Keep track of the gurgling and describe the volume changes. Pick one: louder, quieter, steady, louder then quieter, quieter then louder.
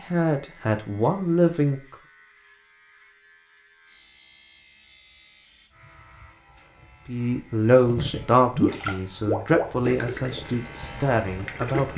quieter.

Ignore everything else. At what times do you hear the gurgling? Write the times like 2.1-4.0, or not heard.
7.8-11.9.